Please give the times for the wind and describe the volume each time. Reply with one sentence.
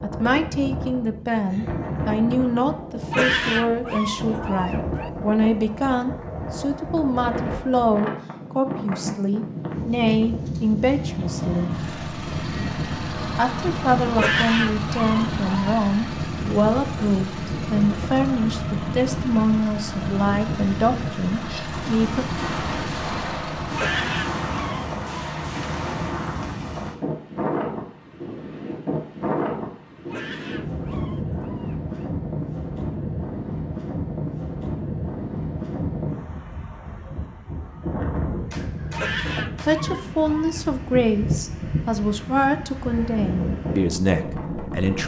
The wind can be heard from 0.0 to 45.0 s, at a steady volume.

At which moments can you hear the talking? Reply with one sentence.
You can hear the talking from 0.0 to 11.7 s, from 13.3 to 22.2 s and from 39.6 to 45.0 s.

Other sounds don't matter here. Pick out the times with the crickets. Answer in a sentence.
The crickets can't be heard in this clip.